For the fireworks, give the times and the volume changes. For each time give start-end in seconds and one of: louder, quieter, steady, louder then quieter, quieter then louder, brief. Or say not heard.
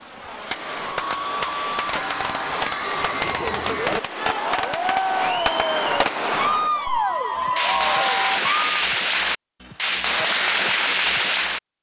0.0-11.6 louder.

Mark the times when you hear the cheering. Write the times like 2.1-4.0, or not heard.
0.7-8.8.